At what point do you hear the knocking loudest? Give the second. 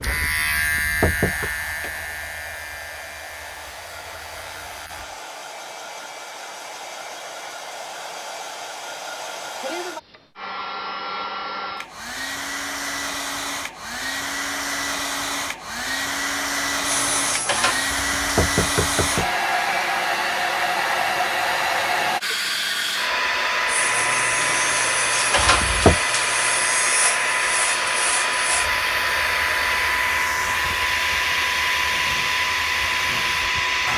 26 s.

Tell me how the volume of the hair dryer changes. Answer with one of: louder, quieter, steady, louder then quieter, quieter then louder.
louder.